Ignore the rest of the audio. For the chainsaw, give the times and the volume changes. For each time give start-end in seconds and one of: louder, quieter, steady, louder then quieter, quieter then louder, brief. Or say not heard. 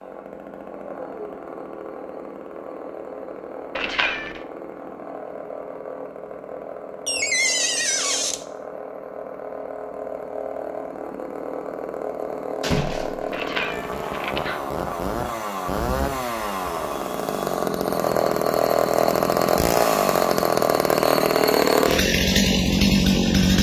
0.0-23.5 louder.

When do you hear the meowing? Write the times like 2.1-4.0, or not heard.
3.8-4.4, 13.3-14.6.